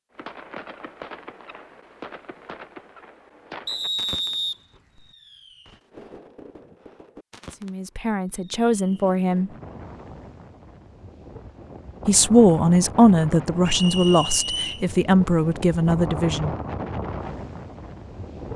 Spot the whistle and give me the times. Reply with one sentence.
You can hear the whistle from 3.6 to 5.0 s and from 13.7 to 14.8 s.